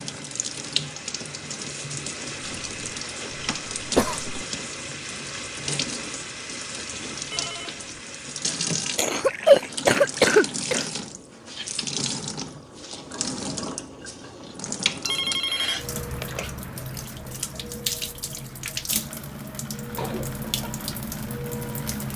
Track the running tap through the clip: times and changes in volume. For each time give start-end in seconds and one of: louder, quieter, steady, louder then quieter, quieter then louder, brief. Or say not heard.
0.0-22.1 steady.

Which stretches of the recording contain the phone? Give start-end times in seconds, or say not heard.
7.3-7.9, 15.0-16.4.